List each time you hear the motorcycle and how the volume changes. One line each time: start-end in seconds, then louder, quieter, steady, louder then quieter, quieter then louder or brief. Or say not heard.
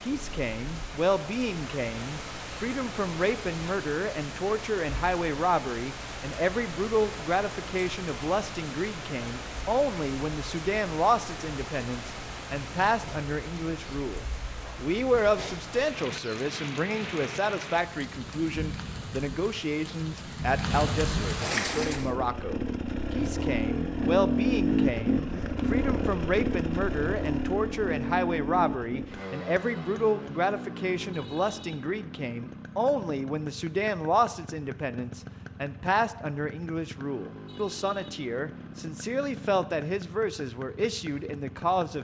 21.6-41.9 quieter.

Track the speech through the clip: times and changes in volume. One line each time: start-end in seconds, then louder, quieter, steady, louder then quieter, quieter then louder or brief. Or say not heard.
0.0-41.9 steady.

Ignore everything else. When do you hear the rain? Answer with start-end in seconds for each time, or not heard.
0.0-22.1.